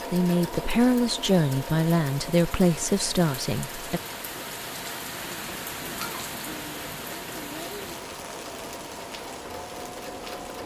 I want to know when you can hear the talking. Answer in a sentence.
The talking can be heard from 0.1 to 4.0 s.